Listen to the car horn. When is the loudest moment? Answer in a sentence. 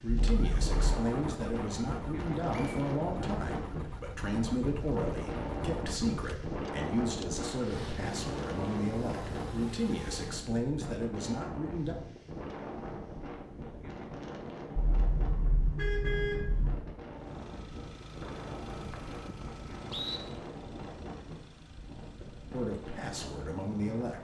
The loudest moment of the car horn is at 16 seconds.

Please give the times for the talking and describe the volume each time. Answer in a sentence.
You can hear the talking from 0.0 to 11.9 s, at a steady volume; and briefly from 22.5 to 24.2 s.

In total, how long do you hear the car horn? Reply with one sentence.
You can hear the car horn for 3 seconds altogether.